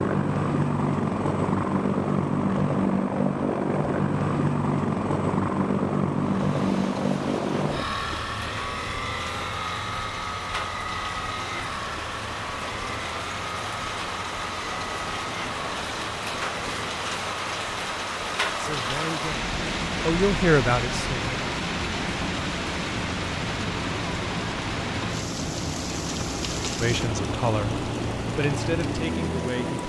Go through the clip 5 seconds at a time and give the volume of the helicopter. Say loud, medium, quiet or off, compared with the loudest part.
loud, loud, medium, quiet, medium, medium.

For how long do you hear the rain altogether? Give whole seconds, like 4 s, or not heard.
24 s.